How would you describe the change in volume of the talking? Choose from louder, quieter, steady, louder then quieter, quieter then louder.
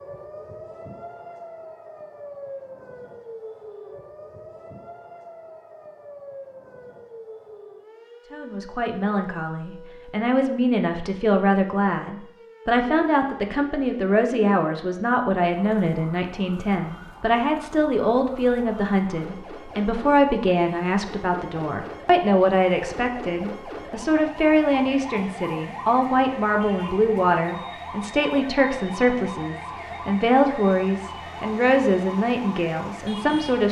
steady.